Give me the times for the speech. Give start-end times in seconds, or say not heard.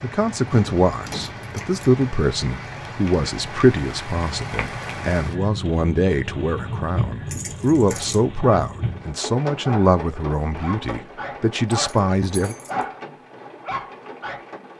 0.0-12.6.